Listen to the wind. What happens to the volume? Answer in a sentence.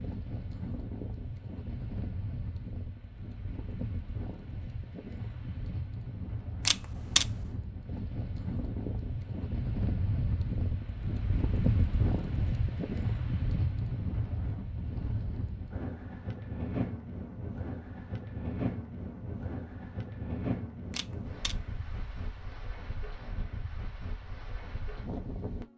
The volume of the wind goes up, then down.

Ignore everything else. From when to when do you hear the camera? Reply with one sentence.
The camera can be heard from 6.7 to 7.3 s and from 20.9 to 22.4 s.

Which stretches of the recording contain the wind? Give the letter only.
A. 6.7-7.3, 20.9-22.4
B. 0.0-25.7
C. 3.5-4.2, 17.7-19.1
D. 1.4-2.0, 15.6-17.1
B.